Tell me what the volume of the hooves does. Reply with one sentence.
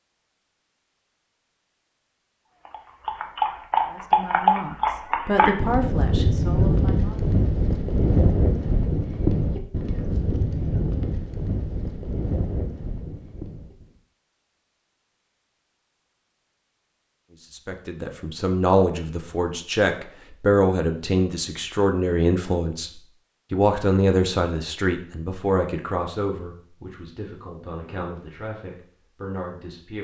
The volume of the hooves goes down.